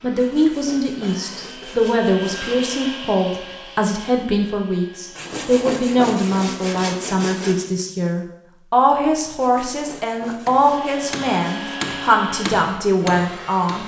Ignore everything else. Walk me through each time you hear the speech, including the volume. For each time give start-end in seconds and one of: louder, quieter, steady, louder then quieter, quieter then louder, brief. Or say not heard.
0.0-13.8 steady.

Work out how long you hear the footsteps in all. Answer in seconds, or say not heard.
not heard.